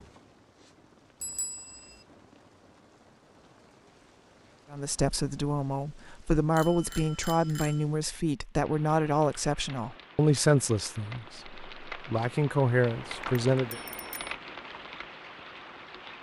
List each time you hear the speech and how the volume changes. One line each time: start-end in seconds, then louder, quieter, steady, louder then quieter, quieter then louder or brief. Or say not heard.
4.7-13.8 steady.